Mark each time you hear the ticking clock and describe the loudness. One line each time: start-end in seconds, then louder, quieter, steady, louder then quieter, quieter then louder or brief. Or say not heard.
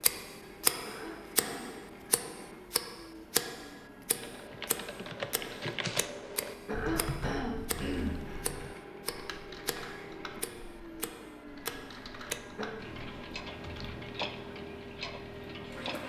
0.0-16.0 quieter.